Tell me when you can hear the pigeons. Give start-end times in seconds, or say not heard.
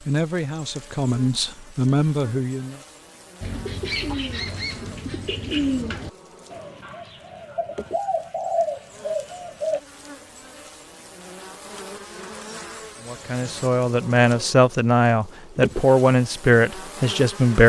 3.4-9.8.